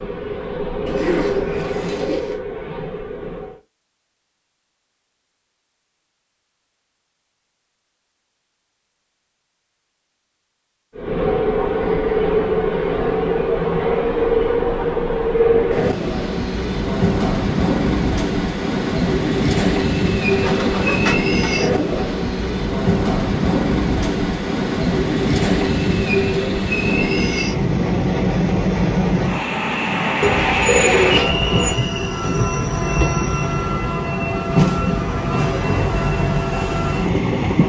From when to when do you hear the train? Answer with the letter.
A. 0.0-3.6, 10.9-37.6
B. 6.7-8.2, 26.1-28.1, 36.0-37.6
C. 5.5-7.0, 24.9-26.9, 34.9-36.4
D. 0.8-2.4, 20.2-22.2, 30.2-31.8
A.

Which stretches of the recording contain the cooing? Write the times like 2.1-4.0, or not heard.
0.8-2.4, 20.2-22.2, 30.2-31.8.